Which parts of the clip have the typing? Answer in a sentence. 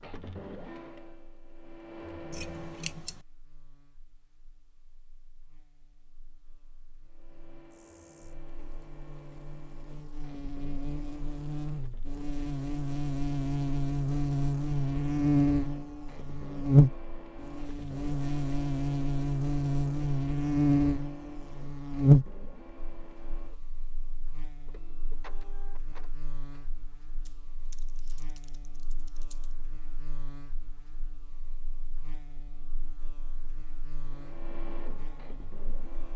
You can hear the typing from 27.2 to 29.6 s.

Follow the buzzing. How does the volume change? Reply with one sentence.
The volume of the buzzing goes up, then down.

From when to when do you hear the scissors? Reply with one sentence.
The scissors can be heard from 2.3 to 3.2 s.